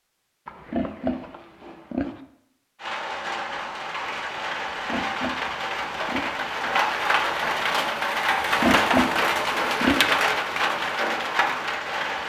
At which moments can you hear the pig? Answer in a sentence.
The pig can be heard from 0.5 to 2.2 s, from 4.7 to 6.4 s and from 8.3 to 10.1 s.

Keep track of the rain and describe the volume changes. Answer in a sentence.
The volume of the rain goes up.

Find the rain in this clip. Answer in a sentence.
The rain can be heard from 2.8 to 12.2 s.